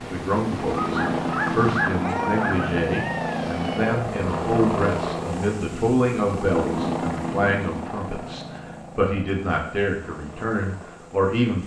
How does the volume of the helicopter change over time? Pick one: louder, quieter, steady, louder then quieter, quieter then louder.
quieter.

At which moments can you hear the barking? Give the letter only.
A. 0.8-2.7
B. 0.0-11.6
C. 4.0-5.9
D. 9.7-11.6
A.